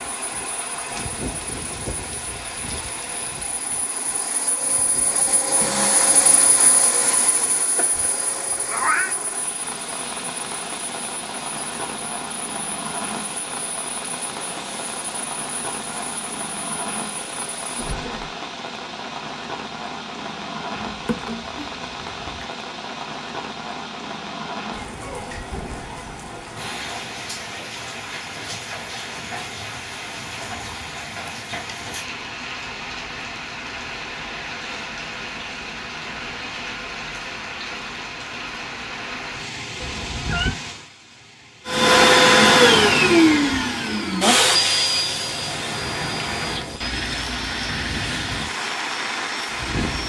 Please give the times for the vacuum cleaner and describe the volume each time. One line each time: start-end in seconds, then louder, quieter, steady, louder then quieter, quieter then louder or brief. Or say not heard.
0.0-18.3 louder then quieter
41.6-50.0 quieter.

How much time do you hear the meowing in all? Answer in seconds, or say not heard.
4 s.